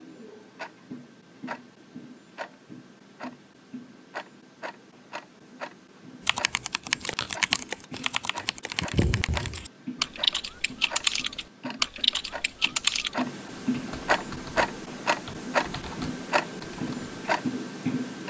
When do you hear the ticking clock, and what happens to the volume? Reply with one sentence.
You can hear the ticking clock from 0.0 to 18.2 s, getting louder.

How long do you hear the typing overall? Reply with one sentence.
The typing can be heard for 11 seconds in total.